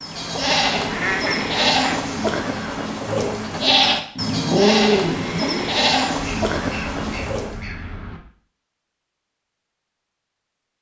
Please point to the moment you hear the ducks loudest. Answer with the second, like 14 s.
1 s.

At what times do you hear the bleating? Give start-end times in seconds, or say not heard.
0.0-7.6.